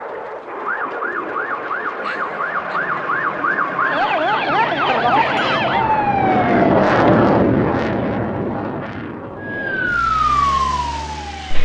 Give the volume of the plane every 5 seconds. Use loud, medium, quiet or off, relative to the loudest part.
medium, loud, quiet.